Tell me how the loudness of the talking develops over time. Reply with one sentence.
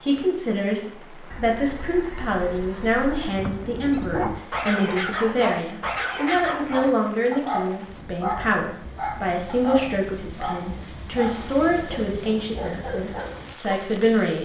The volume of the talking stays about the same.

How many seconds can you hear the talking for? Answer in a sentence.
You can hear the talking for 14 seconds altogether.